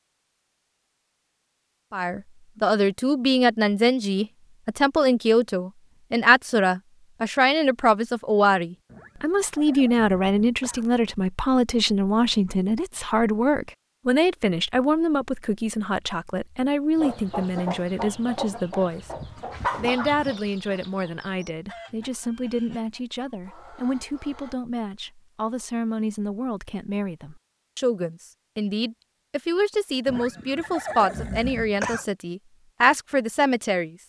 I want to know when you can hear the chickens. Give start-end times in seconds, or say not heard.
16.9-24.6.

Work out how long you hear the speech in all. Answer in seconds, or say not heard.
31 s.